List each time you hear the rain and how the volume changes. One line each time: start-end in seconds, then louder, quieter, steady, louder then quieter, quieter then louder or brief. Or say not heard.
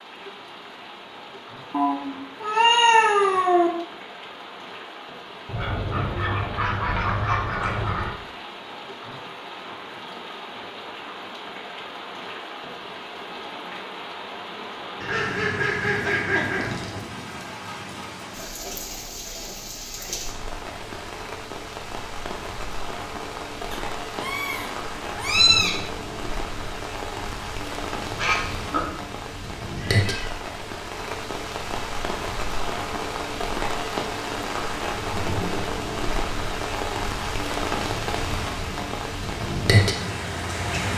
0.0-40.9 louder.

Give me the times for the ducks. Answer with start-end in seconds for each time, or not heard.
5.5-8.1, 15.0-17.0, 28.1-28.8.